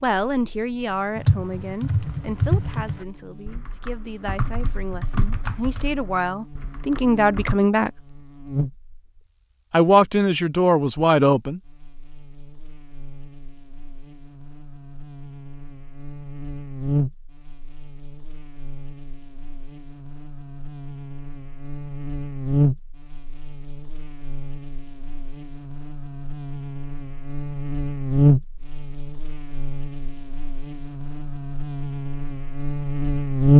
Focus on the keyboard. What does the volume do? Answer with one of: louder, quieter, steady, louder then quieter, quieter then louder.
quieter.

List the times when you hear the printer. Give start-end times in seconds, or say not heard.
not heard.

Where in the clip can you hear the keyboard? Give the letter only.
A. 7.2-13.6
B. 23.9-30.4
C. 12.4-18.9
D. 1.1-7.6
D.